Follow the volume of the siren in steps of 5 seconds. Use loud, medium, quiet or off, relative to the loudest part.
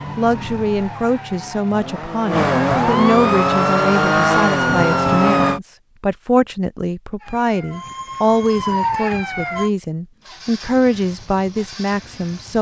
loud, loud, off.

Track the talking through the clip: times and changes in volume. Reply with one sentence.
You can hear the talking from 0.1 to 12.5 s, at a steady volume.